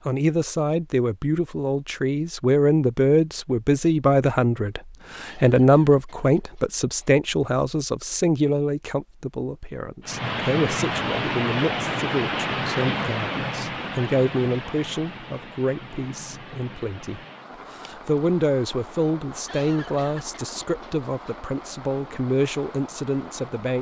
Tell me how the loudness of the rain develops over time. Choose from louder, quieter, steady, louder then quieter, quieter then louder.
quieter.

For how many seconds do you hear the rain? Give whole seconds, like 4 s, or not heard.
14 s.